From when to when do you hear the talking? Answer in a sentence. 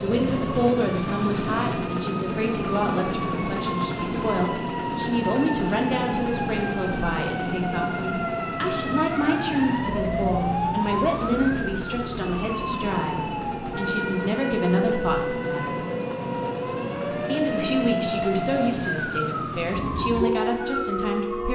The talking can be heard from 0.0 to 15.8 s and from 17.2 to 21.5 s.